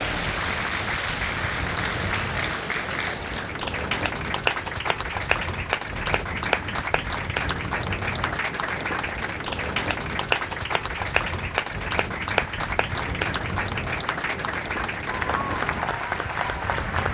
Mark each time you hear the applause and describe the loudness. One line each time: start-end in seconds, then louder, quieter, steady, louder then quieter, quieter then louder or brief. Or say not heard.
0.0-17.1 steady.